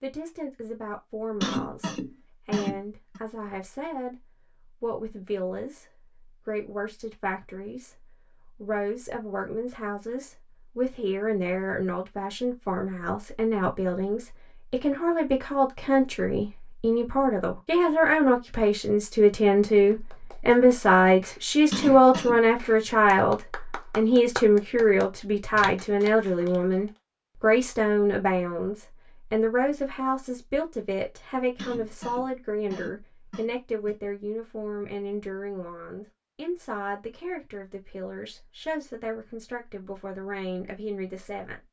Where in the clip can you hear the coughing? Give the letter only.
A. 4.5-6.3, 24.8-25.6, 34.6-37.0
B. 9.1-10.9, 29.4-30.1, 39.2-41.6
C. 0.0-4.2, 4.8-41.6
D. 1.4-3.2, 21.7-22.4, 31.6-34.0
D.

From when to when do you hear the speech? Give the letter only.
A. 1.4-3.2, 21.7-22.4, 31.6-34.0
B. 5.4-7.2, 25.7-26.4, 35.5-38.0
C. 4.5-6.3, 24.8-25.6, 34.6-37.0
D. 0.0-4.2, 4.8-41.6
D.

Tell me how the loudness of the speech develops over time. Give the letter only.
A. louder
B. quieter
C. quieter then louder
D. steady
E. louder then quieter
E.